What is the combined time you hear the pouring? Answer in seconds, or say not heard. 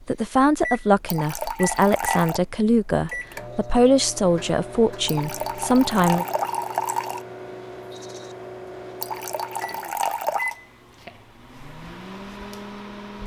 5 s.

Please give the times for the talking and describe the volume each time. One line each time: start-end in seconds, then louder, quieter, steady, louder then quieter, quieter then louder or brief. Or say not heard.
0.1-6.2 steady.